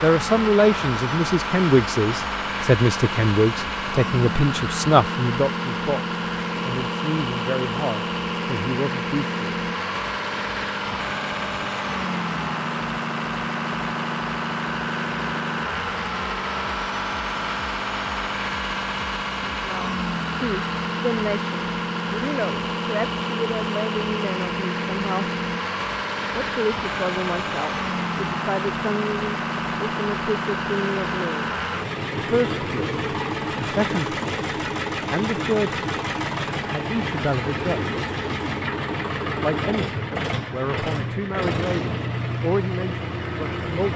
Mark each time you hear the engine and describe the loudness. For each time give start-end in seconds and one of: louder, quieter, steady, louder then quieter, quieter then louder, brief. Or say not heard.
0.0-43.9 steady.